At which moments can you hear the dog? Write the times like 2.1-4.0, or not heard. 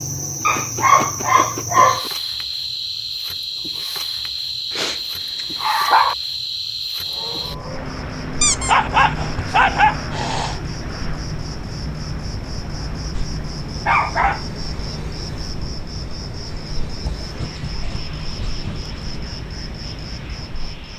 0.5-2.1, 4.7-6.2, 8.4-10.6, 13.1-14.4, 17.0-18.9.